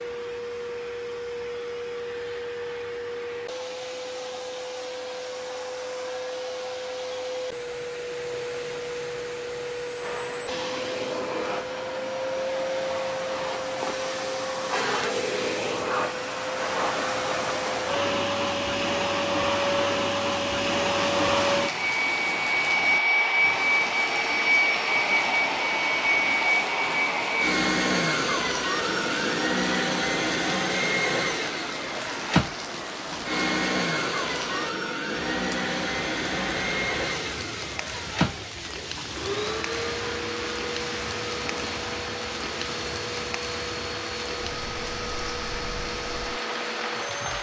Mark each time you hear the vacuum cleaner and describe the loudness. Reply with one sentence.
The vacuum cleaner can be heard from 0.0 to 47.3 s, getting louder then quieter.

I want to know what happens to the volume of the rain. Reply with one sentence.
The volume of the rain stays about the same.